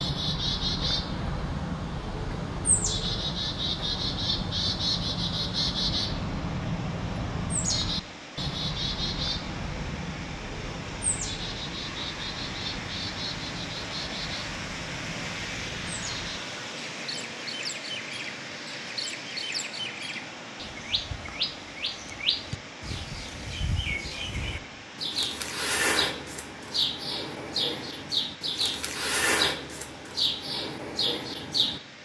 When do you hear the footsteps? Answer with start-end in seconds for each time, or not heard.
not heard.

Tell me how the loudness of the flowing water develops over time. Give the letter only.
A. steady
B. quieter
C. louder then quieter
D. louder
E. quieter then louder
C.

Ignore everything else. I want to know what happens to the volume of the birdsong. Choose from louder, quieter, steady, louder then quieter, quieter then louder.
quieter then louder.